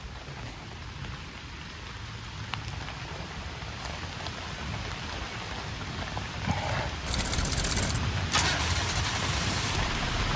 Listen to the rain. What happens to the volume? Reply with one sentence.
The loudness of the rain goes up.